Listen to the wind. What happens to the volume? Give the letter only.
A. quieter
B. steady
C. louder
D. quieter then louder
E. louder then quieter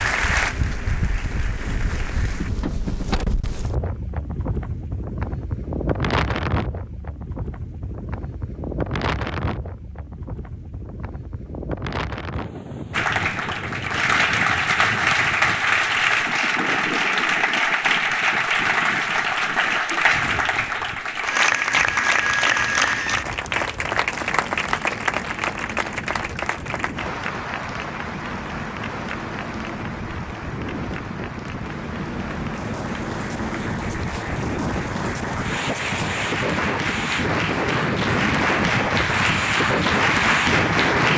D.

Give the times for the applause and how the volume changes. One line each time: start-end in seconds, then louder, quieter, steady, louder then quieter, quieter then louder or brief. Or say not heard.
0.0-2.5 brief
12.9-41.1 quieter then louder.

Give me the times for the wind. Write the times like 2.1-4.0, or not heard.
0.0-41.1.